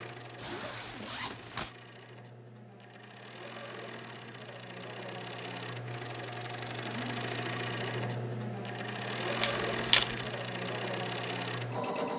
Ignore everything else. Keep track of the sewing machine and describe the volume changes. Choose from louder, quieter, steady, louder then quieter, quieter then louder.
louder.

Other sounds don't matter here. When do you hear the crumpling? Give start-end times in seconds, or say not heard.
9.4-10.2.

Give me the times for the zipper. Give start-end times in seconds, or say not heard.
0.3-1.8.